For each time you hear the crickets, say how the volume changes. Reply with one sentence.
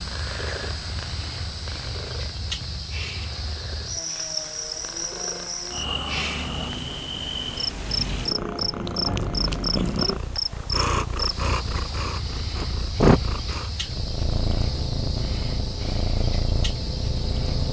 The crickets can be heard from 0.0 to 17.6 s, getting louder then quieter.